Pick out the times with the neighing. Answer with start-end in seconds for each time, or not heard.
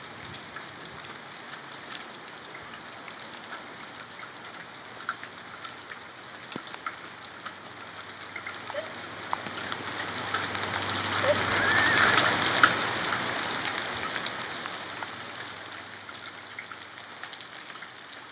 11.4-12.2.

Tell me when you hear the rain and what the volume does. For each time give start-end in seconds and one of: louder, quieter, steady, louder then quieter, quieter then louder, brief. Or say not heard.
0.0-18.2 louder then quieter.